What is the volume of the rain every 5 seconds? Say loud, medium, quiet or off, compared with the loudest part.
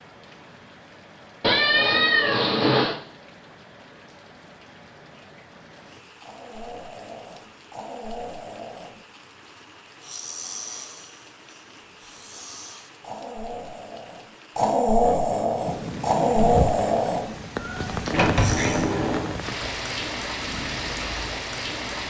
quiet, quiet, quiet, loud, loud.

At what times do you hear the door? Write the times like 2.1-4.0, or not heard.
18.1-19.4.